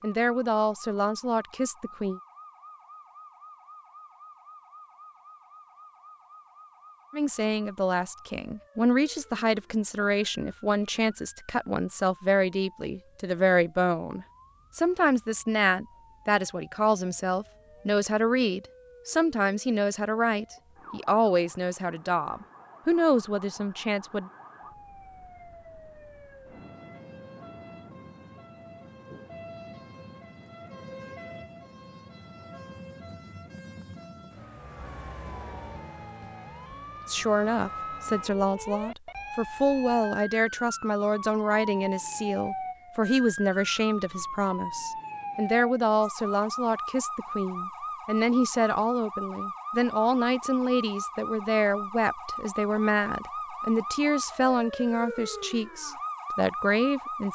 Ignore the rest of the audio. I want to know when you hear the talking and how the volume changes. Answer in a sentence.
The talking can be heard briefly from 0.0 to 2.2 s; from 7.1 to 24.3 s, at a steady volume; and from 37.0 to 57.3 s, at a steady volume.